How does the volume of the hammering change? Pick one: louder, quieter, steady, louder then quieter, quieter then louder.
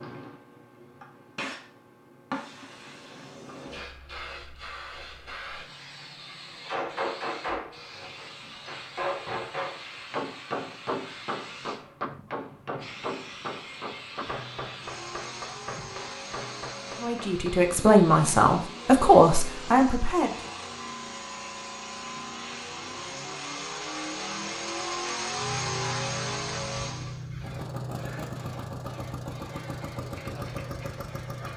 quieter.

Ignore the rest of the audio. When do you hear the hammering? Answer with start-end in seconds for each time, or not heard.
6.7-17.8.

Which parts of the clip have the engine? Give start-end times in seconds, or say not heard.
14.8-31.5.